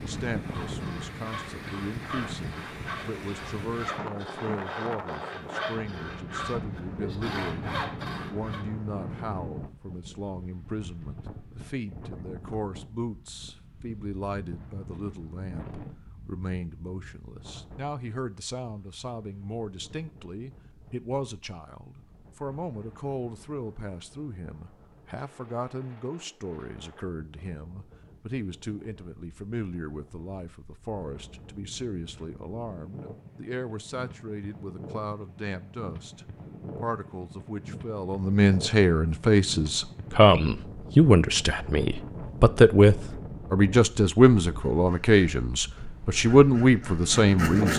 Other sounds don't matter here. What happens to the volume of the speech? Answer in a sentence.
The volume of the speech goes up.